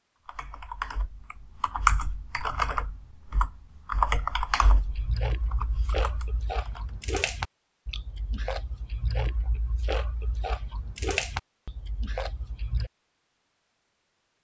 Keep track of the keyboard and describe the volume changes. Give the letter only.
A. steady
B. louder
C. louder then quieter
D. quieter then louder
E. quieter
C.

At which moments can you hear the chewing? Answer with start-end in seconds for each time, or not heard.
4.6-12.9.